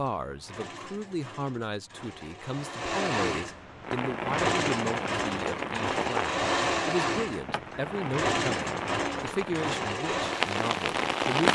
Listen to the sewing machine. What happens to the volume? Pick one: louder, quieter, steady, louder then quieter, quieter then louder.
louder.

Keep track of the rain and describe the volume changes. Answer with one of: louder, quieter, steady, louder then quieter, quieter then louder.
quieter then louder.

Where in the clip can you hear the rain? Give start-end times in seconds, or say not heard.
3.8-11.4.